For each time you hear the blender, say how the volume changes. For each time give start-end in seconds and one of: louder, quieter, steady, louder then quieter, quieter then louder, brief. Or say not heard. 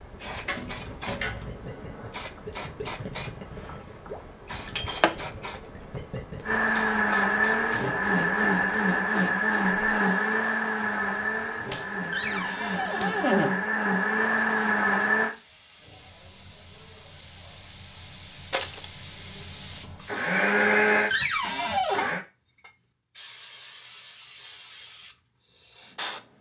6.5-15.3 quieter then louder
20.1-22.2 brief.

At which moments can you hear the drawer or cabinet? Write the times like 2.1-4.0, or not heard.
0.5-1.6, 12.1-13.5, 21.1-22.1.